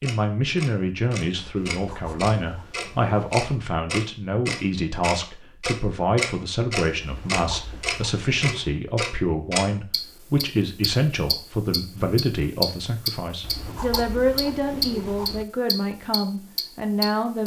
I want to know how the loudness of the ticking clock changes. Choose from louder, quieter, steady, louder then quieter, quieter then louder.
louder.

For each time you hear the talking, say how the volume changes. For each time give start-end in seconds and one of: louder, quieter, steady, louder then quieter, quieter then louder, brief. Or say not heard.
0.0-17.4 steady.